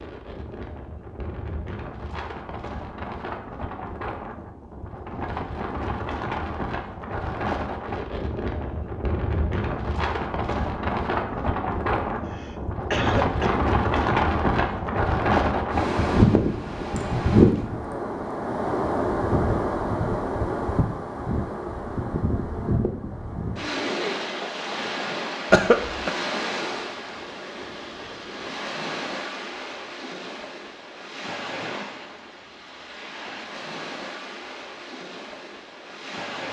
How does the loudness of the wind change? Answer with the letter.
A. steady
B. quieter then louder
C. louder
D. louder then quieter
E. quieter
D.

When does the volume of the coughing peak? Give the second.
26 s.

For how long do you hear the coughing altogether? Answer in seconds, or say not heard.
2 s.